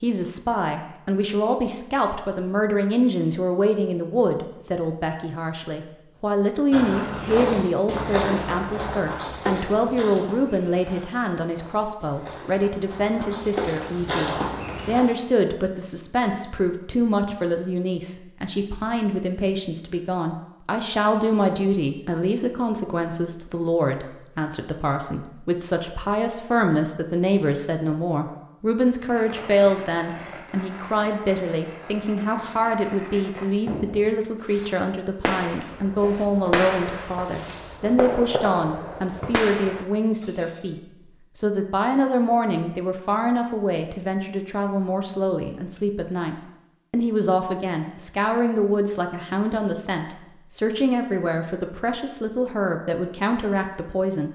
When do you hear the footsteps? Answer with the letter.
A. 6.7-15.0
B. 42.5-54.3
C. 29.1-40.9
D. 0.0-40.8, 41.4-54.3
A.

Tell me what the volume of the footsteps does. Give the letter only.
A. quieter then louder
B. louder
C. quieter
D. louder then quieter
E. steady
A.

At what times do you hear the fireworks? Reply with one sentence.
The fireworks can be heard from 29.1 to 40.9 s.